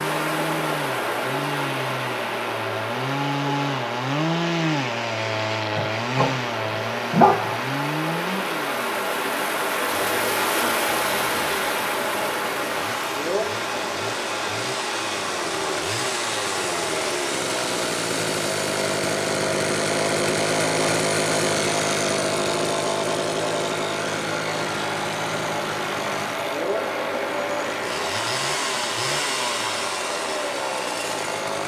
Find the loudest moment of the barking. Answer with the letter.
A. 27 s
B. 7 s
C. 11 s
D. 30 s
B.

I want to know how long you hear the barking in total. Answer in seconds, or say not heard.
2 s.